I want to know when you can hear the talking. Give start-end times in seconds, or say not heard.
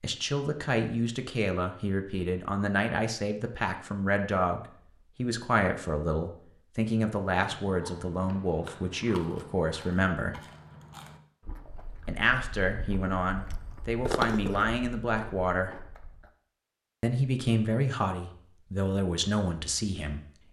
0.0-10.4, 12.1-15.8, 17.0-20.4.